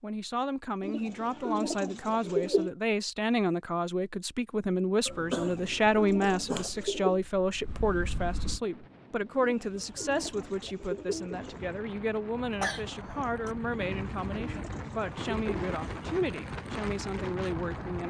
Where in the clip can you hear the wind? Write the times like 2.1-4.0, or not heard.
8.6-18.0.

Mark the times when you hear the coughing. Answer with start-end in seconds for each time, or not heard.
5.0-6.7, 12.5-13.5.